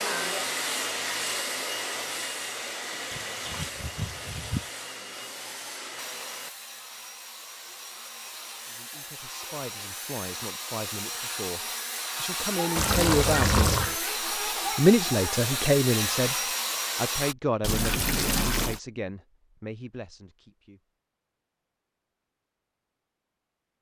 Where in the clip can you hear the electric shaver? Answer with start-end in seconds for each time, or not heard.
not heard.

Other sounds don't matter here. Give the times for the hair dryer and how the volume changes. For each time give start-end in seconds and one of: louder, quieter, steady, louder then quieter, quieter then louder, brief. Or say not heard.
0.0-17.4 quieter then louder.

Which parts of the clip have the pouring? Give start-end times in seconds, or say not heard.
3.1-4.7, 12.8-13.9, 17.6-18.8.